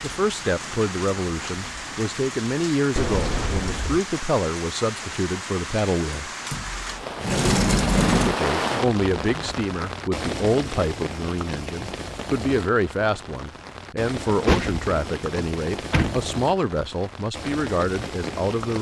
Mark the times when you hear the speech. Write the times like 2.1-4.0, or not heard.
0.0-6.3, 8.1-18.7.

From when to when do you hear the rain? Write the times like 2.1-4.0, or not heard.
0.0-18.7.